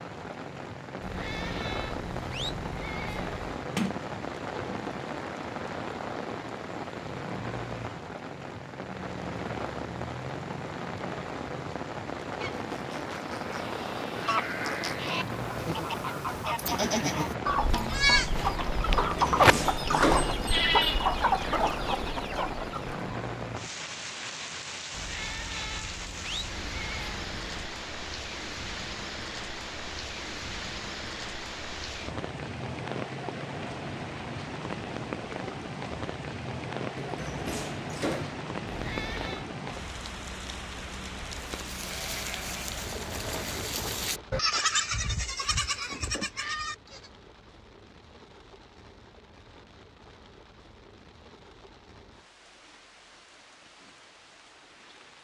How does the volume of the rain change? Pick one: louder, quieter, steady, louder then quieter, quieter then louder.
quieter.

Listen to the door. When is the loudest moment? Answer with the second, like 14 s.
20 s.